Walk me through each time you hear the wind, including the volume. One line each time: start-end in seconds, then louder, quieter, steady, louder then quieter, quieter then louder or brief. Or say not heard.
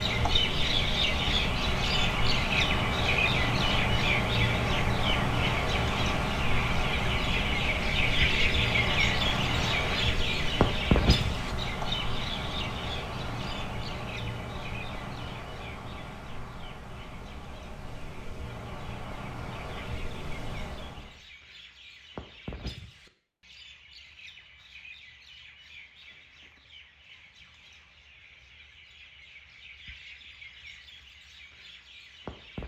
0.0-21.1 quieter.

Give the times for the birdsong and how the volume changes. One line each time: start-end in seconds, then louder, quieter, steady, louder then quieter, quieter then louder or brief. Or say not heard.
0.0-32.6 quieter.